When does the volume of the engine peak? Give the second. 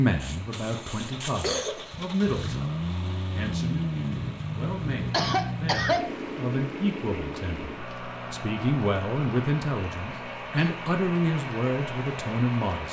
4 s.